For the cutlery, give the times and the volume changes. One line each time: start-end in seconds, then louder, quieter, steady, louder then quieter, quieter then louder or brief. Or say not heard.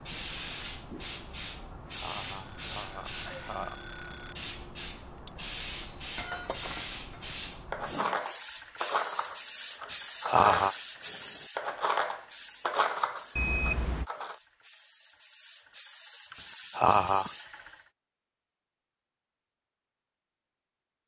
5.2-14.3 louder.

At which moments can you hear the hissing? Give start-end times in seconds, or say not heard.
0.0-17.8.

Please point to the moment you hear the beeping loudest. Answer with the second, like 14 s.
14 s.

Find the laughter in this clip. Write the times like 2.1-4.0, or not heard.
1.9-3.8, 9.8-10.8, 16.3-17.3.